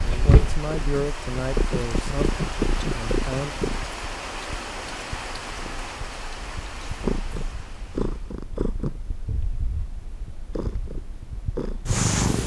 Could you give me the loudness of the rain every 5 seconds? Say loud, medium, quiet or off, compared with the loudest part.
loud, loud, off.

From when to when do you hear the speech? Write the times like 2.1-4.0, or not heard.
0.0-3.5.